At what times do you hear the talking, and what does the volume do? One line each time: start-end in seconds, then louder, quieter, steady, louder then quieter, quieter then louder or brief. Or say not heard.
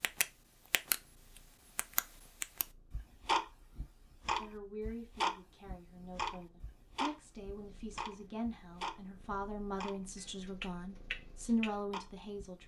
4.3-12.6 louder.